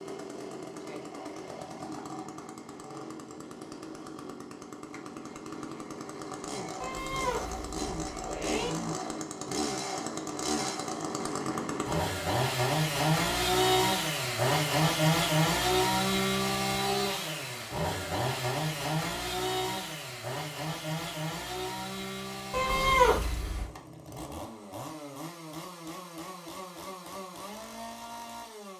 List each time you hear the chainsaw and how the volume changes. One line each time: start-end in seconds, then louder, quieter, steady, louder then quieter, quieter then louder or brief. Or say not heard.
0.0-28.7 louder then quieter.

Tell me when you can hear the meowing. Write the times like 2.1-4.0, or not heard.
6.8-8.7, 22.5-23.6.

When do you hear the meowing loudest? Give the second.
23 s.